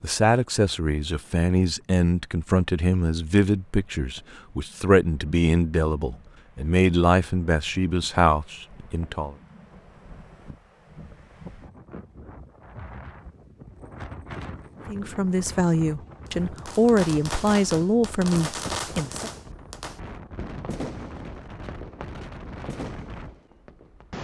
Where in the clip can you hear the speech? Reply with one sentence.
The speech can be heard from 0.0 to 9.3 s and from 14.8 to 19.3 s.